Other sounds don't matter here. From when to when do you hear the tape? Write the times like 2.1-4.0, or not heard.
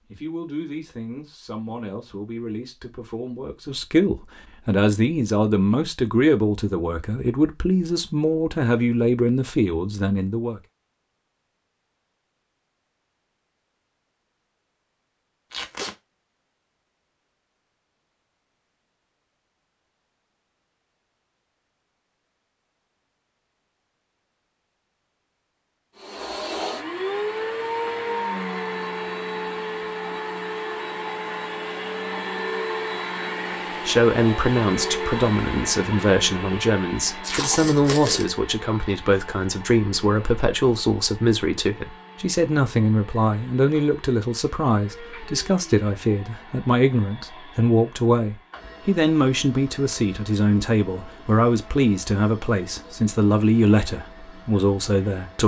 15.5-15.9, 37.2-38.2.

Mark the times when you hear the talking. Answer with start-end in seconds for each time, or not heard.
0.1-10.6, 33.9-55.4.